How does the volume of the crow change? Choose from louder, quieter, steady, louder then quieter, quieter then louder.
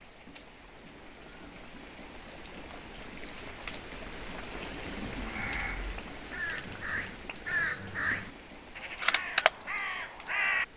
louder.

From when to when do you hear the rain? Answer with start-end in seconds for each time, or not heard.
0.0-10.7.